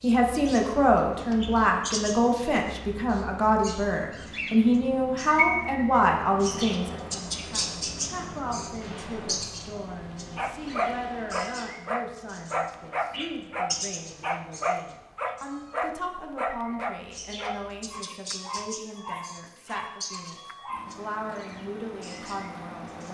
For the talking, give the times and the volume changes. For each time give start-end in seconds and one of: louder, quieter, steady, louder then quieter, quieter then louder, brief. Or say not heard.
0.0-23.0 quieter.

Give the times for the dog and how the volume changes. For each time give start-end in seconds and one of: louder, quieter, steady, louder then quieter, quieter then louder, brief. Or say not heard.
10.3-21.0 quieter.